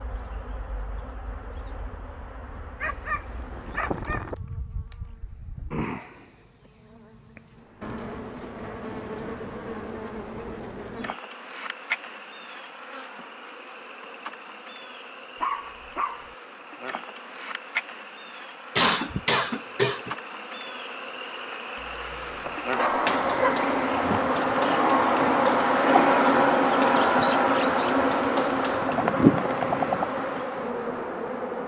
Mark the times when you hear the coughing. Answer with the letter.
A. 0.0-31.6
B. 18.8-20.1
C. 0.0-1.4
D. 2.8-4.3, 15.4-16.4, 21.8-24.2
B.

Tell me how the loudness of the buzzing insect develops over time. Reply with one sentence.
The volume of the buzzing insect goes up.